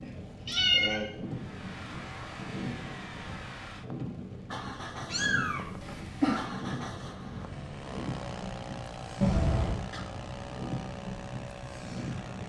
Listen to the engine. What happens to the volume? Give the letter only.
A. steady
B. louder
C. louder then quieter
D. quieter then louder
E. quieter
A.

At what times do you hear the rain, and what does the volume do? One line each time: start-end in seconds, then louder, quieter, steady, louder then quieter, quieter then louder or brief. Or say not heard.
0.0-12.4 steady.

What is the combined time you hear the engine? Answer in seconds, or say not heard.
11 s.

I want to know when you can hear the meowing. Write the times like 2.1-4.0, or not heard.
0.0-1.1, 5.1-6.5, 9.2-9.8.